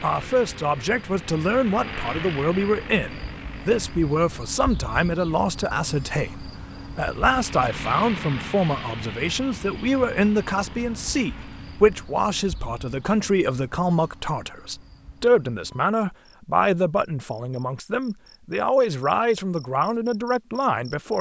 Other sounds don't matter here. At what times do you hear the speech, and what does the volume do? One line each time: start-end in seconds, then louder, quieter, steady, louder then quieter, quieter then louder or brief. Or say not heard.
0.0-21.1 steady.